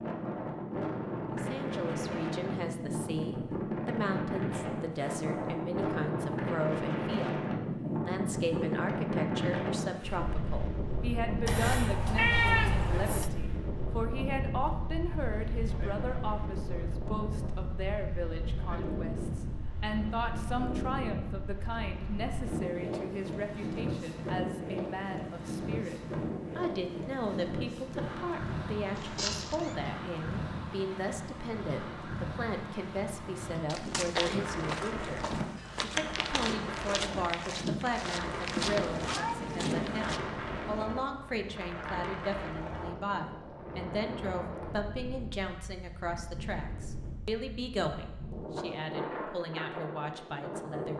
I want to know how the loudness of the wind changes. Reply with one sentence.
The volume of the wind goes down.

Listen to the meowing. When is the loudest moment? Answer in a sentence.
The loudest moment of the meowing is at 12 seconds.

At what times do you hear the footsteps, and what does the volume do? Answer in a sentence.
The footsteps can be heard from 33.6 to 40.2 s, at a steady volume.